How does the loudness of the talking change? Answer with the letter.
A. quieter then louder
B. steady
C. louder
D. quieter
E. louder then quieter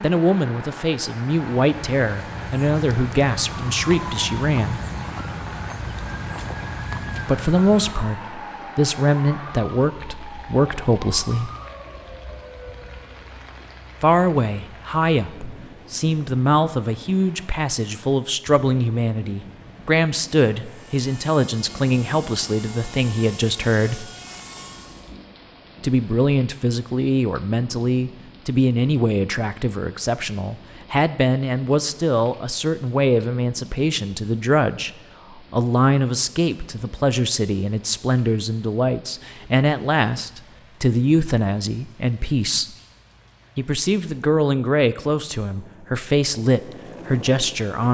B.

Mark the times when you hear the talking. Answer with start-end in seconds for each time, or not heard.
0.0-4.8, 7.2-11.5, 14.0-24.1, 25.8-34.9, 35.5-42.7, 43.5-47.8.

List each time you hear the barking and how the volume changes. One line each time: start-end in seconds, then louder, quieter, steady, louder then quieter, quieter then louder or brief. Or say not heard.
not heard.